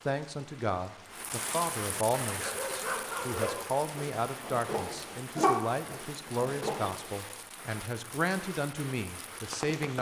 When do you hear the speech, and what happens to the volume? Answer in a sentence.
The speech can be heard from 0.1 to 9.9 s, at a steady volume.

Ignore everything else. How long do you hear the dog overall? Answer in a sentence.
You can hear the dog for 5 seconds altogether.